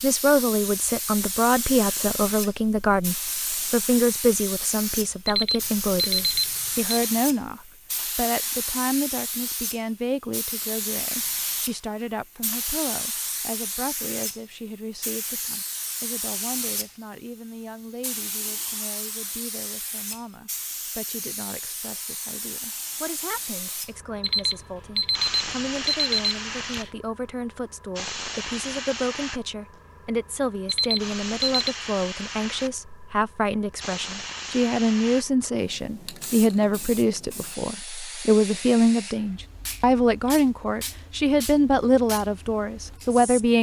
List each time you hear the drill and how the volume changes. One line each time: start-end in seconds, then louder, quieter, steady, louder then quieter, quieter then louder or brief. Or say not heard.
not heard.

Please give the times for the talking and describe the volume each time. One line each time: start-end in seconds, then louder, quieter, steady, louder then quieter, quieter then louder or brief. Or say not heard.
0.0-43.5 quieter then louder.